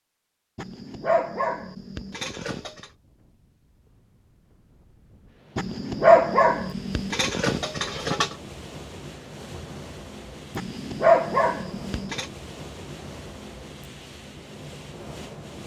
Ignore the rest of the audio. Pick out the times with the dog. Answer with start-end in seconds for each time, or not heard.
0.6-2.9, 5.5-8.3, 10.6-12.2.